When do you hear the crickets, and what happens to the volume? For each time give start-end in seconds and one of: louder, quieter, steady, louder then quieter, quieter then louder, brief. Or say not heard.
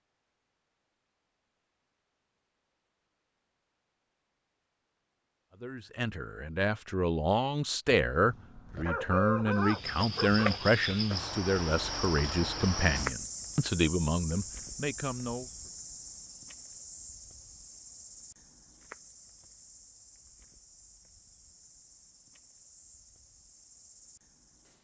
9.5-24.7 quieter.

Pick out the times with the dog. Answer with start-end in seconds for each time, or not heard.
8.1-10.6.